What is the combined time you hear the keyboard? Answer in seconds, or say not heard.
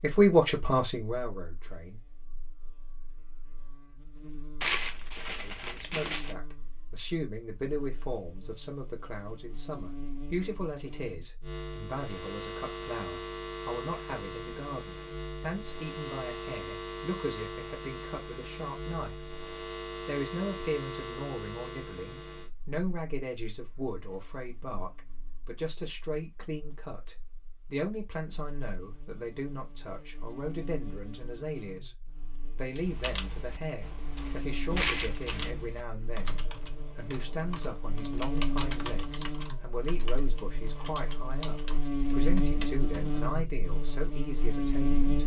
10 s.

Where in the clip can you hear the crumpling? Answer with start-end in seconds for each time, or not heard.
4.6-6.3, 34.8-35.5.